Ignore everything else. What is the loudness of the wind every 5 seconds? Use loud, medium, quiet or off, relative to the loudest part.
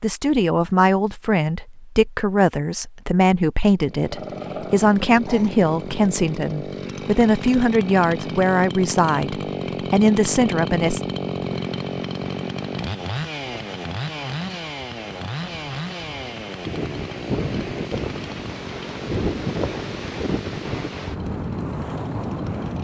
off, off, quiet, loud, loud.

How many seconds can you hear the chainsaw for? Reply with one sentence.
You can hear the chainsaw for 19 seconds altogether.